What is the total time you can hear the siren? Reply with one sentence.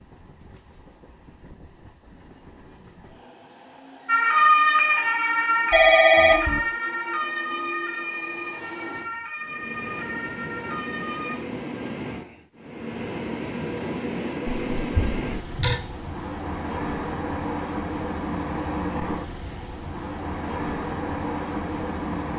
You can hear the siren for 7 seconds altogether.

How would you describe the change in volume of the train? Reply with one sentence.
The volume of the train goes up.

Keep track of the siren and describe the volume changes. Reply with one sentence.
The loudness of the siren goes down.